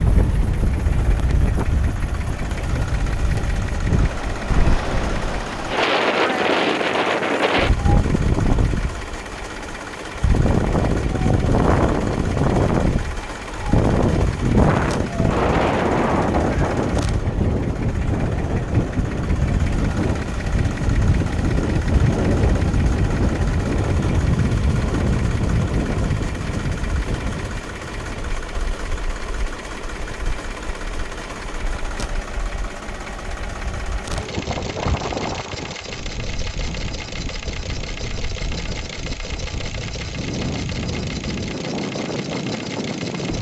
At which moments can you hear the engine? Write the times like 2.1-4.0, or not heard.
0.0-43.3.